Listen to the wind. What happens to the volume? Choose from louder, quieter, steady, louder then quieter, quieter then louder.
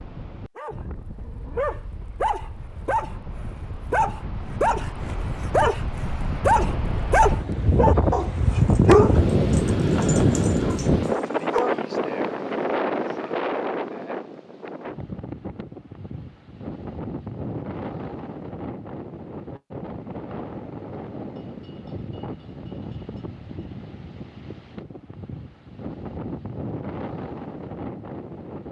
louder then quieter.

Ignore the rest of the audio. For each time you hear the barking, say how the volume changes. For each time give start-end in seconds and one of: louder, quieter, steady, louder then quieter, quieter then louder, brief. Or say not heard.
0.6-11.8 louder then quieter.